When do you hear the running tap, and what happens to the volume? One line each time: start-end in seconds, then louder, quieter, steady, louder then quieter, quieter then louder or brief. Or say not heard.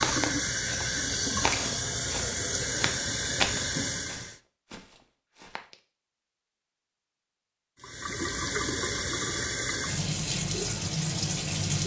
0.0-4.4 steady
7.8-11.8 steady.